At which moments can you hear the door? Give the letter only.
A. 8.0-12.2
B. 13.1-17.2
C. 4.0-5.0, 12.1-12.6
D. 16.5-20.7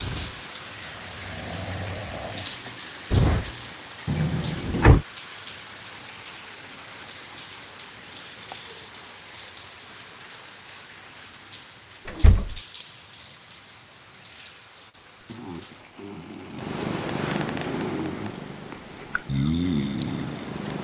C.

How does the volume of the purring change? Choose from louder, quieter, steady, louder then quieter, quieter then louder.
quieter then louder.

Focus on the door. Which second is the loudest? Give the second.
5 s.